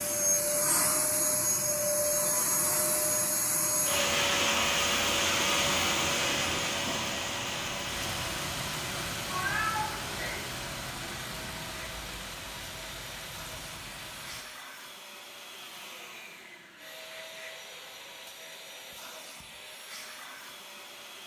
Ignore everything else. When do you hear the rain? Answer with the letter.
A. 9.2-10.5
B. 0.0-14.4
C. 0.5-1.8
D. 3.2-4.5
B.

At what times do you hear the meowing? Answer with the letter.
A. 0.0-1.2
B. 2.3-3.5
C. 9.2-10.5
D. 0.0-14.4
C.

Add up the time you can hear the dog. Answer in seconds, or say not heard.
not heard.